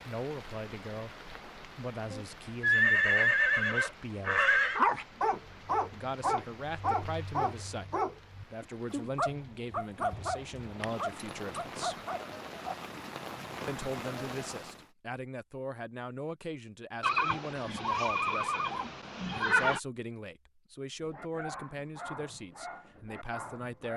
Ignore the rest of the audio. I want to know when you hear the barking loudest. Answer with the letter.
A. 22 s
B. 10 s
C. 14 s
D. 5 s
D.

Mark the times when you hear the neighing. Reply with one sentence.
The neighing can be heard from 2.1 to 4.8 s, from 10.8 to 11.7 s and from 17.0 to 19.8 s.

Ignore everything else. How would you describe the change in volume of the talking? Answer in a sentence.
The loudness of the talking stays about the same.